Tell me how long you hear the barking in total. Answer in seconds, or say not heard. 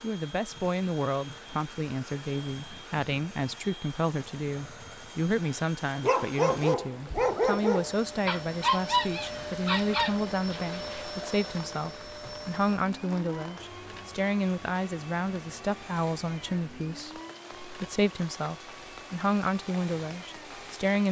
5 s.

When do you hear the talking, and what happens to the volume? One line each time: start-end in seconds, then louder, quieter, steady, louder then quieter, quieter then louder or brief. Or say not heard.
0.0-21.0 steady.